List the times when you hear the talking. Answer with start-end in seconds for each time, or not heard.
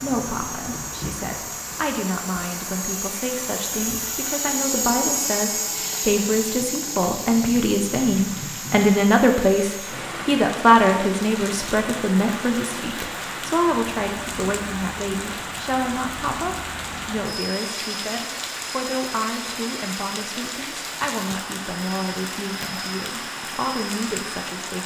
0.0-24.8.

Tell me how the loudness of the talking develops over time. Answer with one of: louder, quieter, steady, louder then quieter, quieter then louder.
louder then quieter.